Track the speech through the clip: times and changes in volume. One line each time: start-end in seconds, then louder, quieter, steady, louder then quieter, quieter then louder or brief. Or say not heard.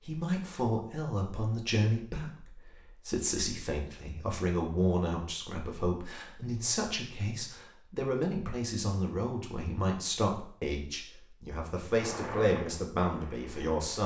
0.1-14.0 steady.